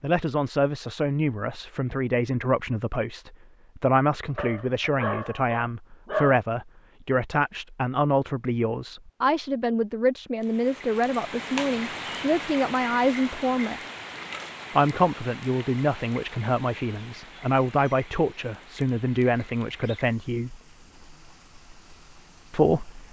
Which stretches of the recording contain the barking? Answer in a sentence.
The barking can be heard from 4.3 to 6.4 s.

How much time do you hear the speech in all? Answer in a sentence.
You can hear the speech for 20 seconds altogether.